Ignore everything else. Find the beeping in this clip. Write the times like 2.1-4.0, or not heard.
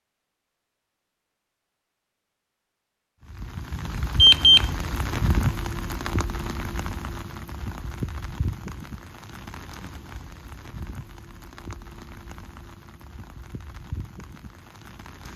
4.2-4.7.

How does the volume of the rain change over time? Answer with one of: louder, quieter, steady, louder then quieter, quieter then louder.
quieter.